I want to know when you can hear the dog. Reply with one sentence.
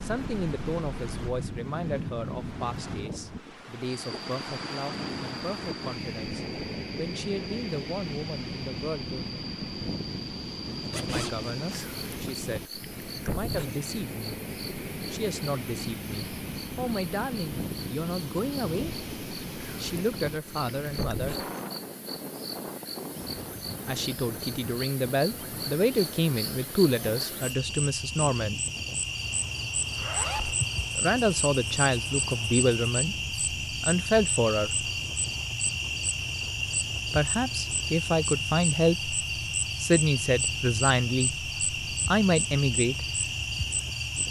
The dog can't be heard in this clip.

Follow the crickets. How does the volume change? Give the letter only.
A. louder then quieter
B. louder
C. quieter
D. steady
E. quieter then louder
B.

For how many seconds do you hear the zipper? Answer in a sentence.
The zipper can be heard for 2 seconds in total.